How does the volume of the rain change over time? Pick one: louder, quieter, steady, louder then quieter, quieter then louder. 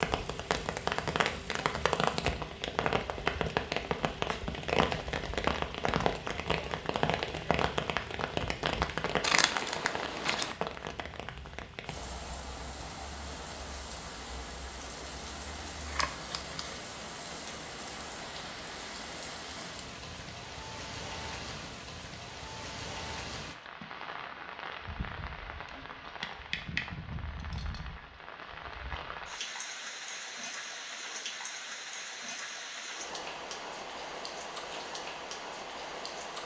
quieter.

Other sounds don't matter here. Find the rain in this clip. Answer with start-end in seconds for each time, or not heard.
0.0-36.4.